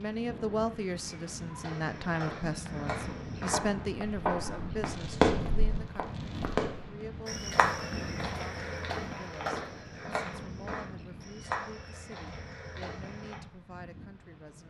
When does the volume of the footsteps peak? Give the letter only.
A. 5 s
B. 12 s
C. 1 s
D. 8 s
D.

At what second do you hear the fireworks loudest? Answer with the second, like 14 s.
5 s.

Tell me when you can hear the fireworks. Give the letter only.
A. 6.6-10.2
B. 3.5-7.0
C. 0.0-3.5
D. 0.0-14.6
B.